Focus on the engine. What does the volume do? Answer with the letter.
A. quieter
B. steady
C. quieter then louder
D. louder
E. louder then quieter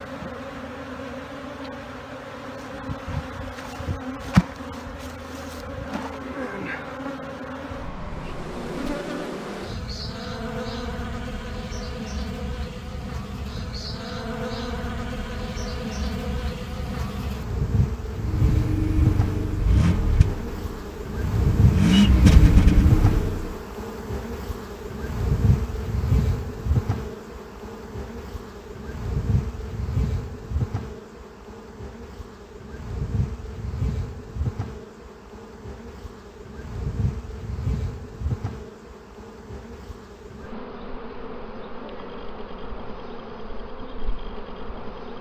C.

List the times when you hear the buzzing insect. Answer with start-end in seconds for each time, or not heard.
0.0-45.1.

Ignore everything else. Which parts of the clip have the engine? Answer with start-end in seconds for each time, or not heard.
18.2-23.5.